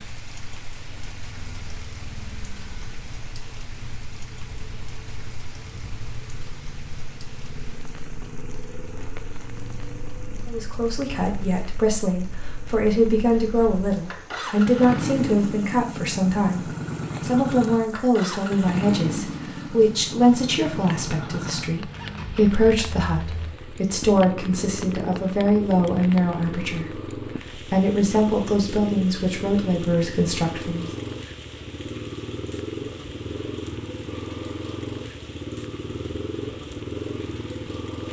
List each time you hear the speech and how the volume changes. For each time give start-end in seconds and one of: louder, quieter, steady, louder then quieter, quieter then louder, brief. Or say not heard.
10.4-30.9 steady.